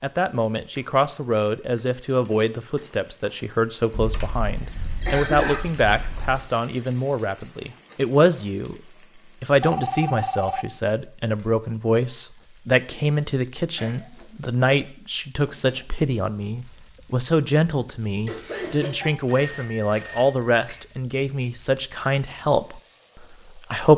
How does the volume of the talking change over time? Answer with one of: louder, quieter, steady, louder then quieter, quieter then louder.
steady.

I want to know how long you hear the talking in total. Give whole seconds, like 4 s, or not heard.
23 s.